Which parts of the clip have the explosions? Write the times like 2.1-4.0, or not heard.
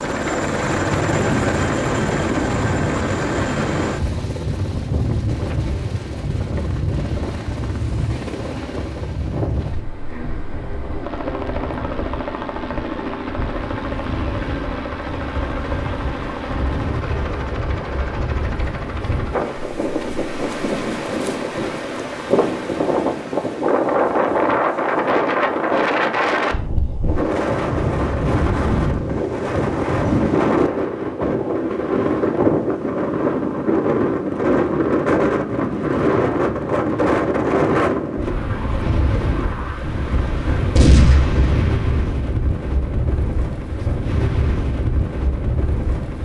40.8-42.0.